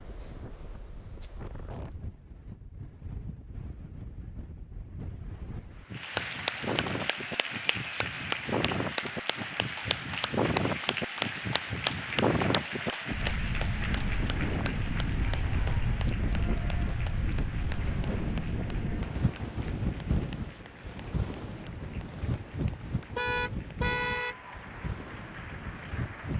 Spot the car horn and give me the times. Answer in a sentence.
The car horn can be heard from 23.1 to 24.4 s.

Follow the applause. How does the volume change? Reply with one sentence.
The loudness of the applause goes down.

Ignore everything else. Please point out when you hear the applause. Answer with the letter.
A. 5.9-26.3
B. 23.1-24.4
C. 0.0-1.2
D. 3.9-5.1
A.